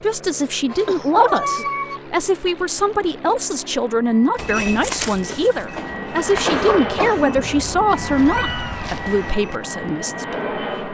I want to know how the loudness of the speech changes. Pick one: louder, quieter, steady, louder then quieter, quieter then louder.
quieter.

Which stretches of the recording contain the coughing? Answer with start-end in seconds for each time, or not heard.
0.8-1.6, 5.8-7.5.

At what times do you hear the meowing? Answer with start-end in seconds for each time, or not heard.
0.7-2.0, 7.9-9.2.